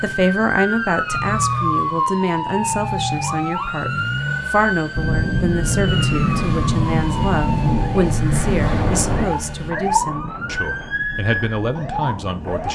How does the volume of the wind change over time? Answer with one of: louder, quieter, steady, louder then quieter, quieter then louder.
quieter.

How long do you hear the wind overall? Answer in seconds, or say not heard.
8 s.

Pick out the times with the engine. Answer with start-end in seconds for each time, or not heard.
0.0-9.7.